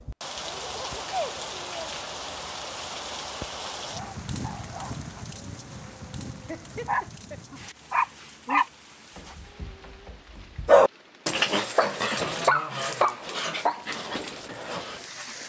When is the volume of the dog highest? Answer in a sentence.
The volume of the dog peaks at 11 seconds.